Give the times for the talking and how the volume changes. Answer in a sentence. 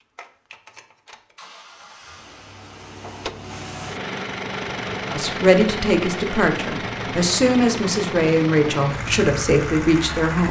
The talking can be heard from 5.1 to 10.4 s, at a steady volume.